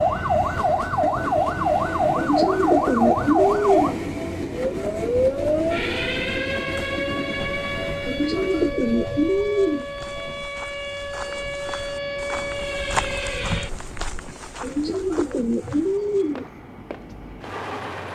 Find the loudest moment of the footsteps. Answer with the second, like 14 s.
13 s.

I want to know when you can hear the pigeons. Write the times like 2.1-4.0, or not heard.
2.1-4.0, 8.1-9.8, 14.6-16.4.